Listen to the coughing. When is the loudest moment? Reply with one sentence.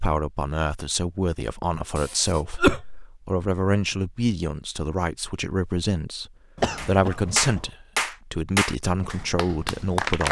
The volume of the coughing peaks at 3 seconds.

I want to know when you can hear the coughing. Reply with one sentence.
You can hear the coughing from 1.9 to 3.0 s and from 6.5 to 7.7 s.